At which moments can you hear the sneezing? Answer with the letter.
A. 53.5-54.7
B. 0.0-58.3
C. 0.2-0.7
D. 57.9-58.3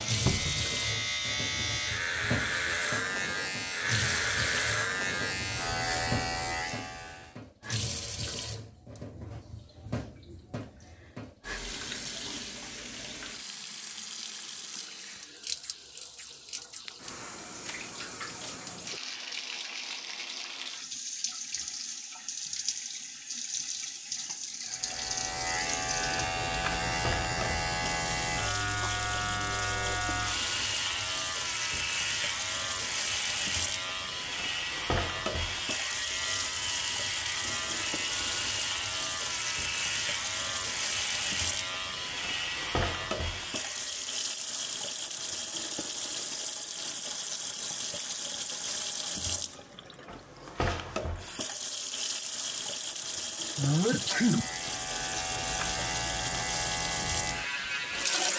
A.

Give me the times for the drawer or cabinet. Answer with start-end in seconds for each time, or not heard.
0.2-0.7.